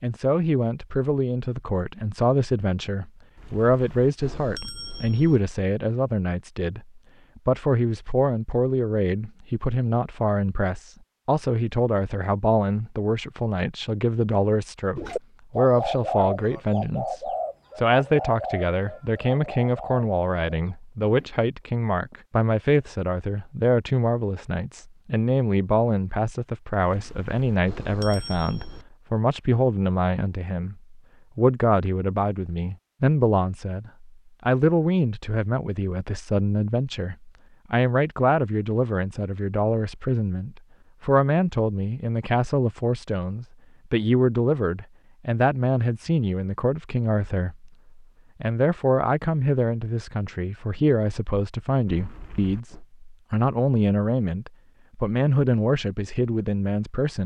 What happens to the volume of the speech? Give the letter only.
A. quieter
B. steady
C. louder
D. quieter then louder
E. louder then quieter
B.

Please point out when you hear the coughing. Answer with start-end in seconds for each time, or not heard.
not heard.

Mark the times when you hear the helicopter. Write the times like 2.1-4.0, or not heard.
not heard.